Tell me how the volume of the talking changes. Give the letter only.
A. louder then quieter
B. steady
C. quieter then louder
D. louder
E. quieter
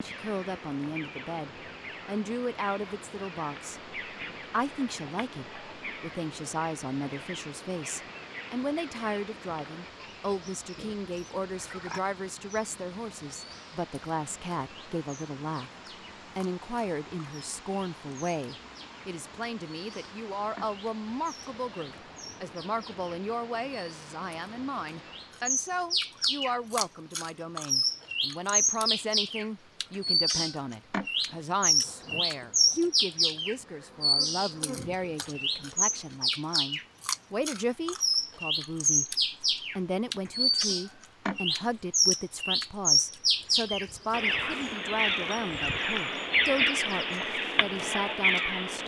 B.